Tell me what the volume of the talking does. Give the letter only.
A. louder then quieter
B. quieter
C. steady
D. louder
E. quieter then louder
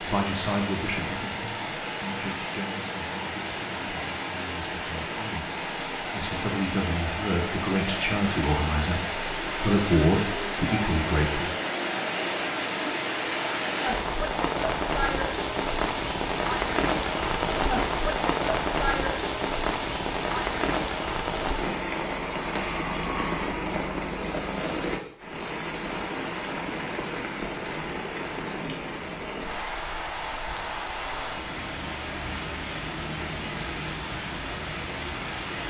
E.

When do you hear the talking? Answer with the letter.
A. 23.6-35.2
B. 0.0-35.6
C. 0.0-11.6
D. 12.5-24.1
C.